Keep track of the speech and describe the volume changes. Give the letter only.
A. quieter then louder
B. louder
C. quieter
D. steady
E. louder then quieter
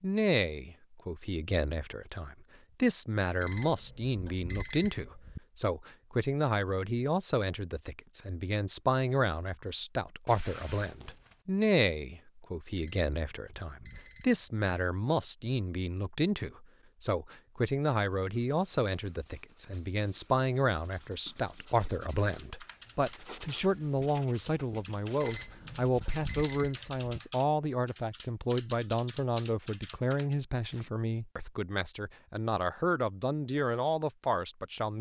D.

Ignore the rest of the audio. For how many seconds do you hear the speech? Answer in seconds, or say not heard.
35 s.